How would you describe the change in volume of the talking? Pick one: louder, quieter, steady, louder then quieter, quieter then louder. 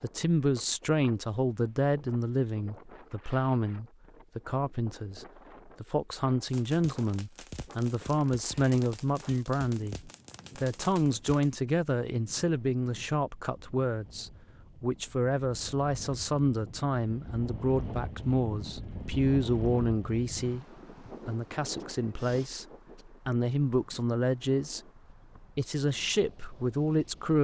steady.